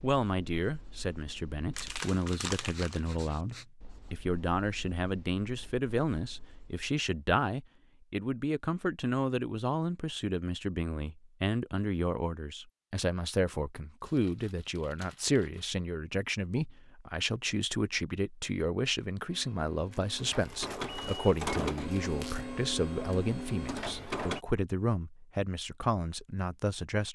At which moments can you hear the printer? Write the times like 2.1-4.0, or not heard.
19.2-24.4.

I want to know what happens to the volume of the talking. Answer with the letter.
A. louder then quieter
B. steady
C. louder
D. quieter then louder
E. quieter
B.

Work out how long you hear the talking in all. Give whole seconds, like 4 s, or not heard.
27 s.